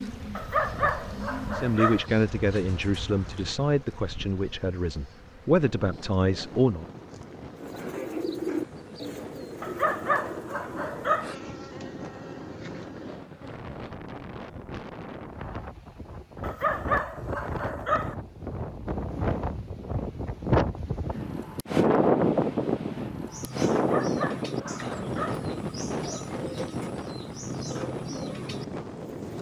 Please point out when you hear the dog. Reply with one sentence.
You can hear the dog from 0.3 to 2.0 s, from 9.6 to 11.3 s, from 16.4 to 18.1 s and from 23.8 to 25.4 s.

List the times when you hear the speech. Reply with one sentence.
The speech can be heard from 1.5 to 6.8 s.